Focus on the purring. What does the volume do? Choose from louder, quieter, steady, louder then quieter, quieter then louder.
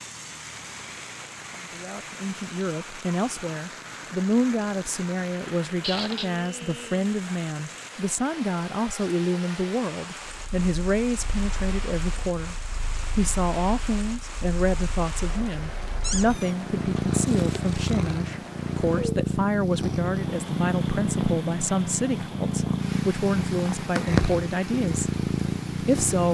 louder.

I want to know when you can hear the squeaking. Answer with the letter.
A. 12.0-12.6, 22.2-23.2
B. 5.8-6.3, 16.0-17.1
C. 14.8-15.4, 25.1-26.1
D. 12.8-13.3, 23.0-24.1
B.